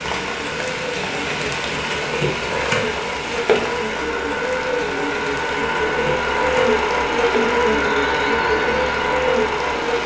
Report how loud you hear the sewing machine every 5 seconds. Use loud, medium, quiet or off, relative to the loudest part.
medium, loud.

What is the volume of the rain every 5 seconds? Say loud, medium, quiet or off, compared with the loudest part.
loud, medium.